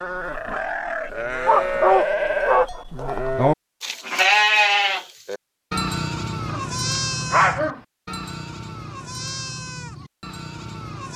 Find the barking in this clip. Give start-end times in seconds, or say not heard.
1.4-2.7, 6.5-7.8.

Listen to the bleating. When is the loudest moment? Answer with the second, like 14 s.
4 s.